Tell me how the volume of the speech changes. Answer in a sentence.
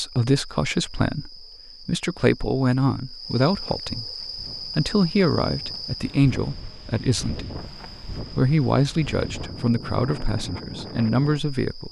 The loudness of the speech stays about the same.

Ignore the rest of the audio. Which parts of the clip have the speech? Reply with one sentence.
The speech can be heard from 0.0 to 7.5 s and from 8.3 to 11.8 s.